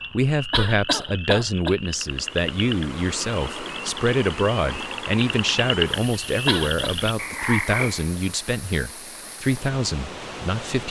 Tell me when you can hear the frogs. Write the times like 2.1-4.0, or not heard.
0.0-8.1.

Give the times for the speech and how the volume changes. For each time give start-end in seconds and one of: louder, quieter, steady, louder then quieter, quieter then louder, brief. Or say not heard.
0.1-10.8 steady.